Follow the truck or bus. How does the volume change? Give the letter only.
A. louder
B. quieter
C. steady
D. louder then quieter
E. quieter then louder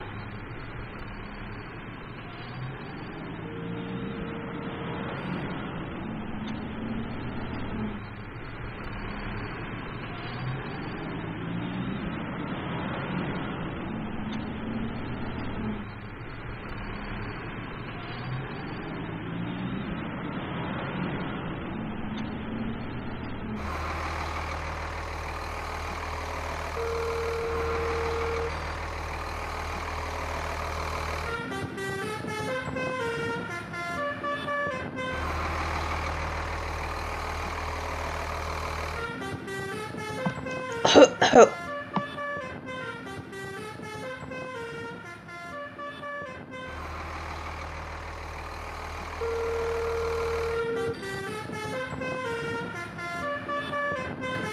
C.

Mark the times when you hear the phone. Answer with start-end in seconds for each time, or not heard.
3.4-5.5, 26.8-28.6, 49.2-51.2.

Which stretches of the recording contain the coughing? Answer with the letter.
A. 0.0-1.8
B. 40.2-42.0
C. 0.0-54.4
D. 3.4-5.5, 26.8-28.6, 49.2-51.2
B.